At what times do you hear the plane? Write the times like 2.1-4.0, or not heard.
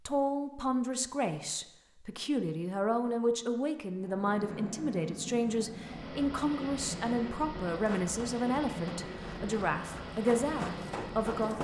4.0-11.5.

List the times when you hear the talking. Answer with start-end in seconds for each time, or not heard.
0.1-11.5.